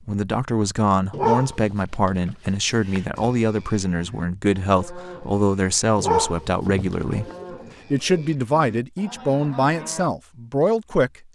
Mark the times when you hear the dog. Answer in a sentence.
The dog can be heard from 1.1 to 3.0 s and from 6.0 to 7.3 s.